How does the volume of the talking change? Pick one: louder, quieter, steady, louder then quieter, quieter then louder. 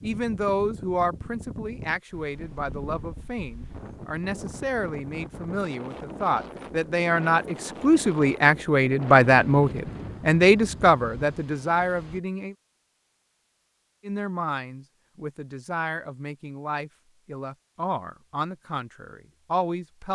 louder then quieter.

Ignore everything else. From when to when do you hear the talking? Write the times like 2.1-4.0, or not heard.
0.0-12.6, 14.1-20.0.